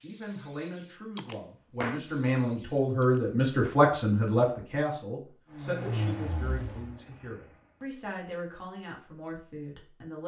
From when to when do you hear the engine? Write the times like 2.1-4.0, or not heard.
5.5-7.8.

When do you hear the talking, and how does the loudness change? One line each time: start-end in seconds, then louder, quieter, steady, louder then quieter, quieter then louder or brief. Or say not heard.
0.0-10.2 louder then quieter.